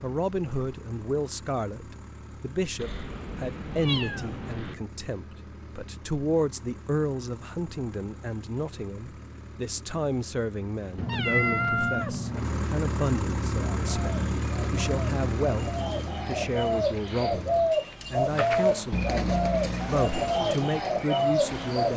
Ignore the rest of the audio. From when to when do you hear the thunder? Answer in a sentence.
You can't hear the thunder here.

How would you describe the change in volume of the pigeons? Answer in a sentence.
The volume of the pigeons goes up.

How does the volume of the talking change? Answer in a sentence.
The loudness of the talking stays about the same.